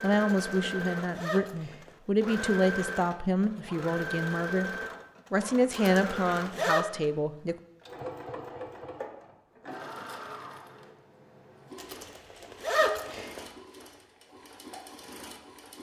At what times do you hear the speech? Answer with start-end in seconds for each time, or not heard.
0.0-4.7, 5.3-7.5.